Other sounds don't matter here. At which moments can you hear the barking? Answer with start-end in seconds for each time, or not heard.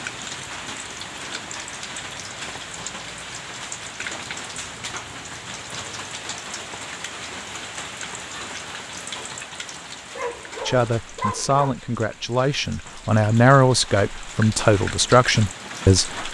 10.2-11.8.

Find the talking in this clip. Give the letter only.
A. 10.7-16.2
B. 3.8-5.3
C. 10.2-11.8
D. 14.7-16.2
A.